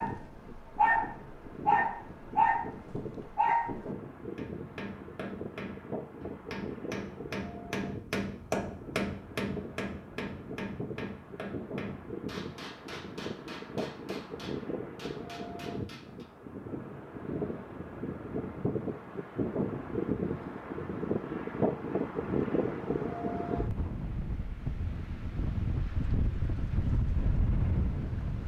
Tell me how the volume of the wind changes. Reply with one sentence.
The volume of the wind goes up.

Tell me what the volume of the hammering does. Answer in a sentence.
The loudness of the hammering goes up, then down.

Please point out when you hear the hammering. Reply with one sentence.
You can hear the hammering from 4.3 to 16.2 s.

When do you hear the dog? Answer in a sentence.
The dog can be heard from 0.0 to 3.8 s.